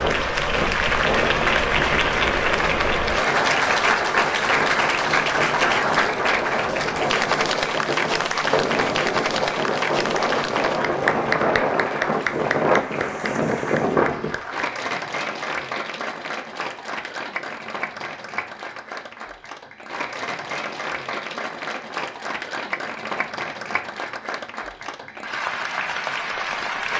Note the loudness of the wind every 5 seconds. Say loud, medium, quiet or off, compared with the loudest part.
medium, loud, loud, off, off, off.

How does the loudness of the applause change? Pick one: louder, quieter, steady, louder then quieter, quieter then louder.
quieter.